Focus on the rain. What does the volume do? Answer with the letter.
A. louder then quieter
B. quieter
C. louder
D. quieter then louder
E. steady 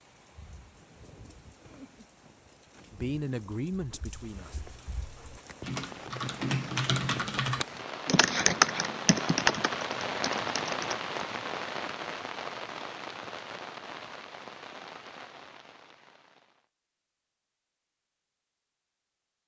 A.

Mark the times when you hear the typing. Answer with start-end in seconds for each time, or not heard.
4.0-11.1.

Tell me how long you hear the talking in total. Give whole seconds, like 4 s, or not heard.
2 s.